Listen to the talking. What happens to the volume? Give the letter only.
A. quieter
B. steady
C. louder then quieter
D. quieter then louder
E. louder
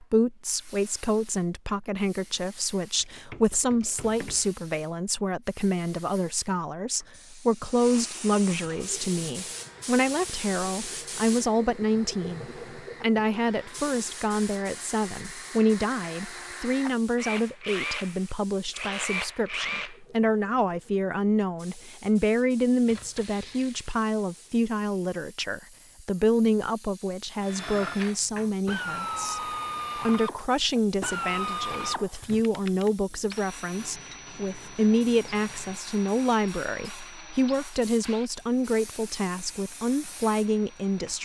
B.